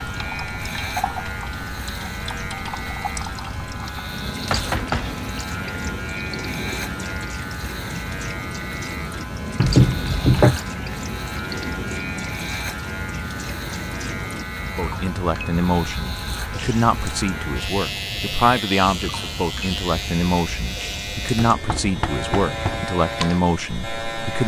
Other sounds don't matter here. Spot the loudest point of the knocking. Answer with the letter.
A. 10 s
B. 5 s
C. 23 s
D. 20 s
A.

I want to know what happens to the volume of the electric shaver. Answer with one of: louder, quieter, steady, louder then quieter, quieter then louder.
steady.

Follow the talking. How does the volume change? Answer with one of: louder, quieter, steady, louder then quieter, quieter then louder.
steady.